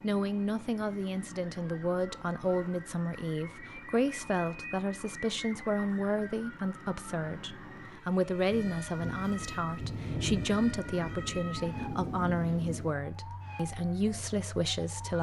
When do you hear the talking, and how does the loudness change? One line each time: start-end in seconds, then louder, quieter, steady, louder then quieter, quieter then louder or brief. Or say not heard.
0.0-15.1 steady.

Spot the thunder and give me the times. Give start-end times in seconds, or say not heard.
8.5-13.0.